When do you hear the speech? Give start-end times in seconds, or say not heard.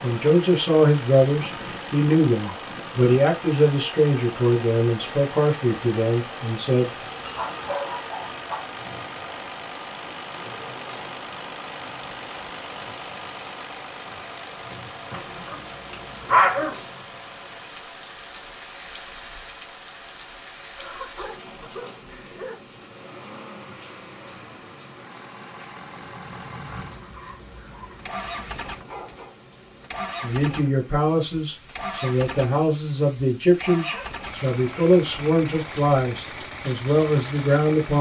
0.0-6.9, 30.2-37.9.